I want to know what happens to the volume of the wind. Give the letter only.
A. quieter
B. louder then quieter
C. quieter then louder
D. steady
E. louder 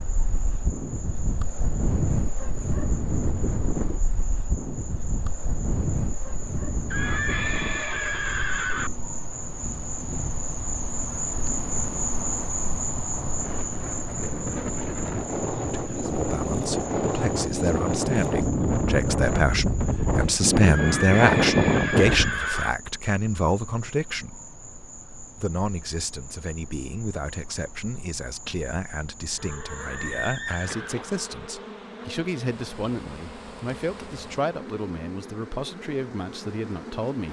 C.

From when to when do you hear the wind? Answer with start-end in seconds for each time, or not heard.
0.0-22.3.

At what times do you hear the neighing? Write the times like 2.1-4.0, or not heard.
6.9-8.9, 20.7-22.7, 29.4-31.5.